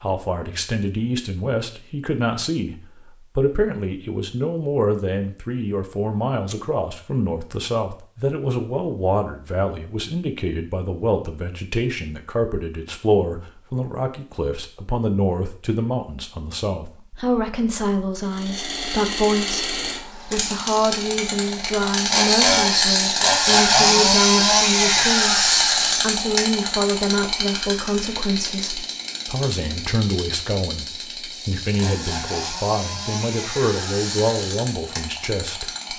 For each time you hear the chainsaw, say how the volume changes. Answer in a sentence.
You can hear the chainsaw from 18.4 to 35.9 s, getting louder then quieter.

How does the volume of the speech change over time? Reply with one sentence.
The volume of the speech stays about the same.